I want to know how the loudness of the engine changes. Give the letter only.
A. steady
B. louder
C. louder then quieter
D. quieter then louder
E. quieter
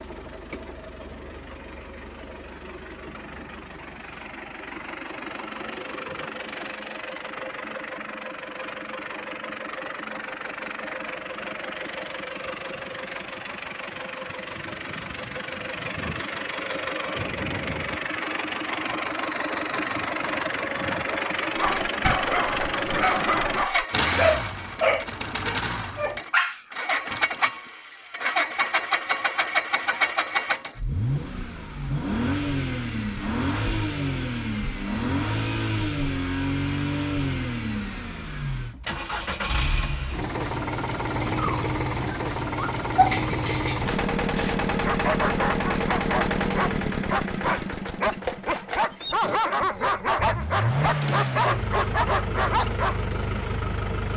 B.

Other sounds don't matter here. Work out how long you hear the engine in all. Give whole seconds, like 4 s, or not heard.
54 s.